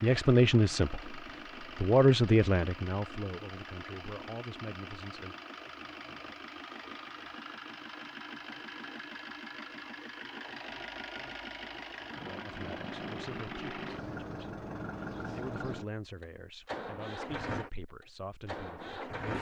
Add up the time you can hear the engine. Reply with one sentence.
The engine can be heard for 19 seconds in total.